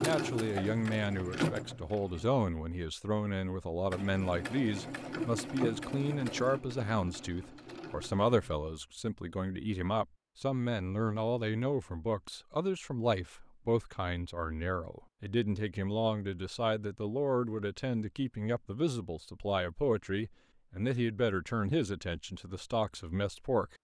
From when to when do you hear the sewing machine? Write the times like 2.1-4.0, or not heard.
0.0-2.3, 3.9-8.6.